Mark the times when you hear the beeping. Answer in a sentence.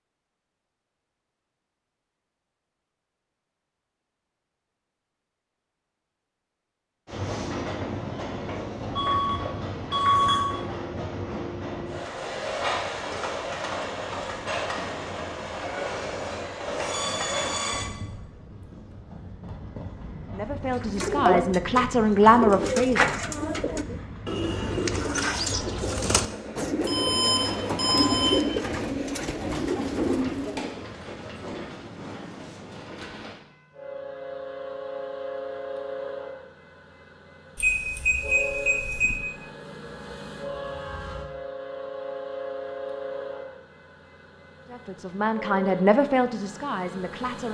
The beeping can be heard from 8.9 to 10.4 s, from 26.8 to 28.4 s and from 37.5 to 39.1 s.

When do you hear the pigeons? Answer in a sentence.
The pigeons can be heard from 20.8 to 30.9 s.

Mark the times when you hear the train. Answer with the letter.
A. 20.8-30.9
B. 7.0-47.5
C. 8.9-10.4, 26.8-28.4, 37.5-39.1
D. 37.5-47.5
B.